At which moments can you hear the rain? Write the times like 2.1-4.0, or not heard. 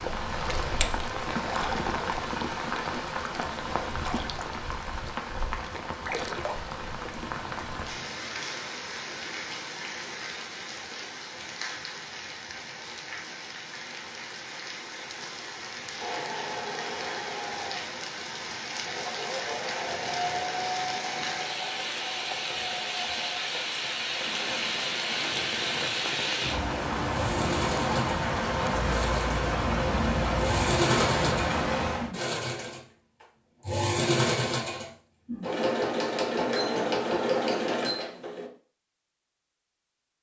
0.0-32.1.